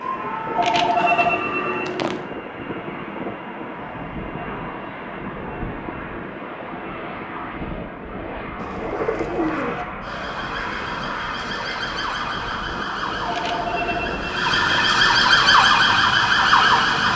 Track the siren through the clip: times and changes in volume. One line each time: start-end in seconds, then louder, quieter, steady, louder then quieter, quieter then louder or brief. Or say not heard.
0.0-1.9 brief
10.0-17.1 louder.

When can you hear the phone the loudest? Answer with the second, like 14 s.
1 s.